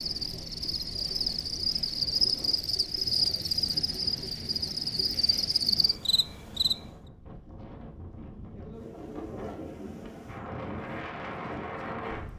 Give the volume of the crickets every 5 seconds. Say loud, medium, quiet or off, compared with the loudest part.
loud, loud, off.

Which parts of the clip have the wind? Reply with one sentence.
You can hear the wind from 0.0 to 12.3 s.